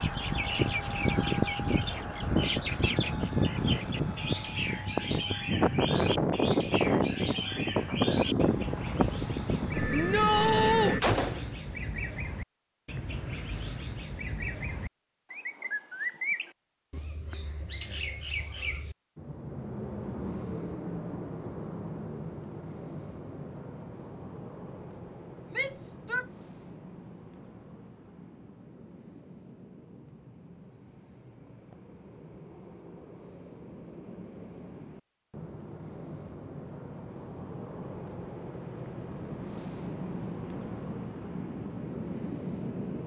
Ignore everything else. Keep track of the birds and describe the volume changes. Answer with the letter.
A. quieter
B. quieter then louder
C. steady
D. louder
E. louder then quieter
B.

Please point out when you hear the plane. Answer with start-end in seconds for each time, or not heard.
0.0-11.0.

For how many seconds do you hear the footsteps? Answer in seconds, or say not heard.
not heard.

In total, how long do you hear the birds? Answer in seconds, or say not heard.
43 s.